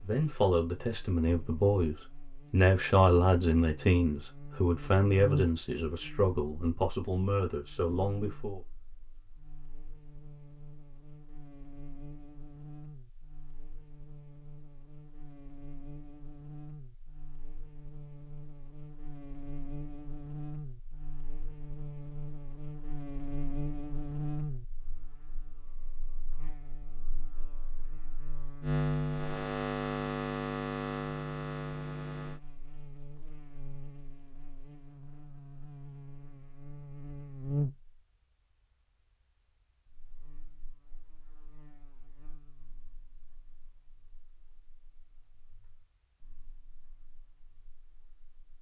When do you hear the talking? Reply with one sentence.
You can hear the talking from 0.0 to 8.6 s.